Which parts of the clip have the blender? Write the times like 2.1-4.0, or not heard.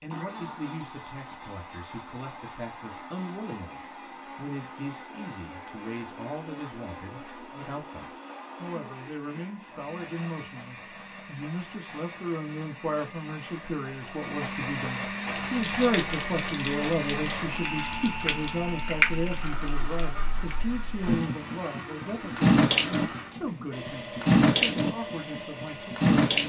0.1-26.1.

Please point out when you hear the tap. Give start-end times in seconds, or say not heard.
15.2-26.4.